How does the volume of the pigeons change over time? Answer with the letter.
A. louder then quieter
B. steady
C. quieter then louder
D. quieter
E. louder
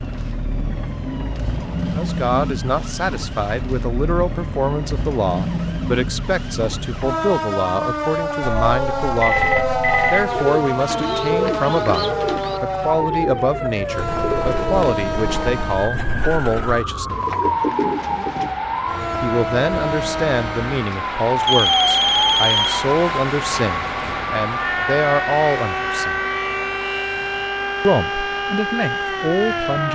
C.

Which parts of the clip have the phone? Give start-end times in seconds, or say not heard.
8.4-10.4, 21.4-22.9.